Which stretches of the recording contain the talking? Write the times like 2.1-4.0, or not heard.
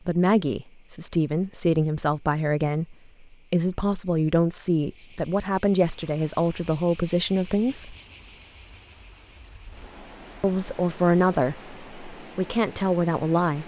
0.1-8.0, 10.4-13.6.